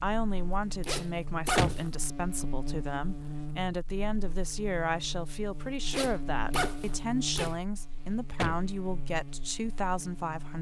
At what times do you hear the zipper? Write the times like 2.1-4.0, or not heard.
0.8-1.9, 5.9-7.5.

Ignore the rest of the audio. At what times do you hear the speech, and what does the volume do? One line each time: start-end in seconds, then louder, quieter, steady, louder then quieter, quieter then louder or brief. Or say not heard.
0.0-10.5 steady.